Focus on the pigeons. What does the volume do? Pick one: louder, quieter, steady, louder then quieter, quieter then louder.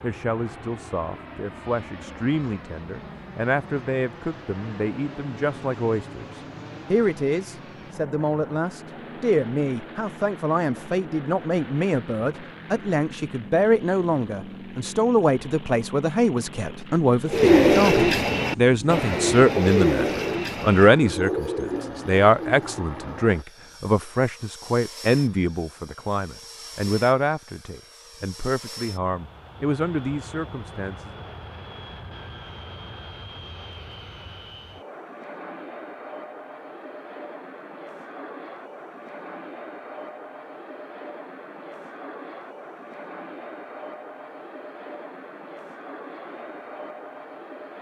quieter.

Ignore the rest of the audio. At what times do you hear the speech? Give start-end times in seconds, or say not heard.
0.0-31.2.